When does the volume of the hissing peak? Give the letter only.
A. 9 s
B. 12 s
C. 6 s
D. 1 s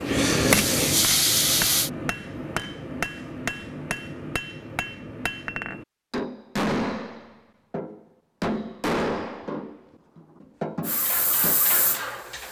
D.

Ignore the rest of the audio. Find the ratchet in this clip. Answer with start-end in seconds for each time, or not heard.
not heard.